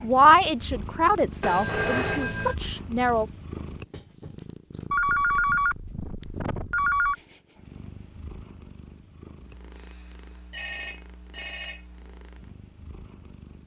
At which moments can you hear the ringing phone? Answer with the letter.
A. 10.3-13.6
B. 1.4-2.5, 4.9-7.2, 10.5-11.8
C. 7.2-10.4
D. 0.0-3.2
B.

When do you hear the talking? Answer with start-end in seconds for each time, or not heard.
0.0-3.2.